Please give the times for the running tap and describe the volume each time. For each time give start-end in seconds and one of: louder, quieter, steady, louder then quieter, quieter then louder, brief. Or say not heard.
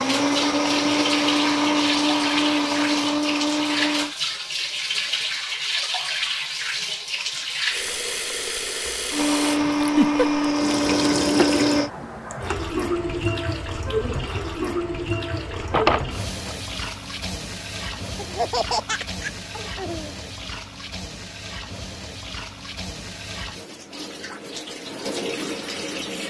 0.0-26.2 quieter.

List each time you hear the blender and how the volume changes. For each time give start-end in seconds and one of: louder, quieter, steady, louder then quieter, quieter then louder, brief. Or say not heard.
0.0-4.2 steady
9.1-11.9 brief.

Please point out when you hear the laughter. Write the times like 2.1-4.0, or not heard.
9.8-10.5, 18.1-20.1.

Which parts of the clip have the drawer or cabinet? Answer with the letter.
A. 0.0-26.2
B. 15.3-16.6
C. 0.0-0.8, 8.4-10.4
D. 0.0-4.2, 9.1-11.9
B.